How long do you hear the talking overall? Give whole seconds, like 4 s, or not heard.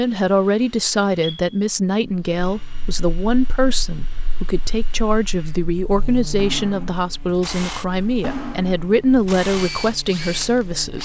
11 s.